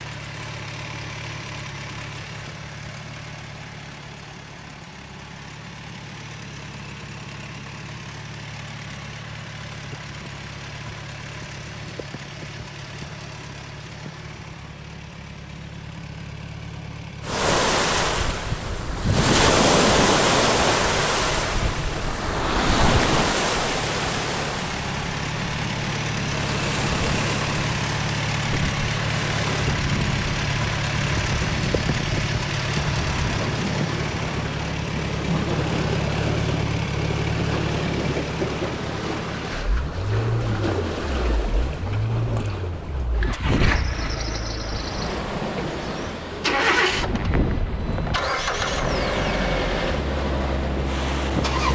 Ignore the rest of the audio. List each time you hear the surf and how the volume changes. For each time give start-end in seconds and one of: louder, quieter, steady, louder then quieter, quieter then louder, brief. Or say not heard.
17.2-51.7 quieter.